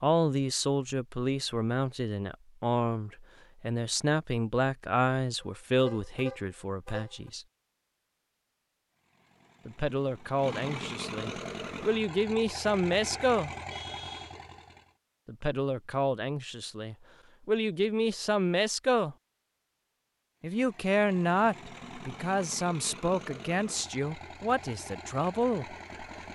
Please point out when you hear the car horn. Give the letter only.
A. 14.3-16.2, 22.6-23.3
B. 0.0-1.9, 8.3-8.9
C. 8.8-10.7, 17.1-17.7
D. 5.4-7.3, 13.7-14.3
D.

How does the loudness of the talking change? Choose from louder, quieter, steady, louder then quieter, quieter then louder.
steady.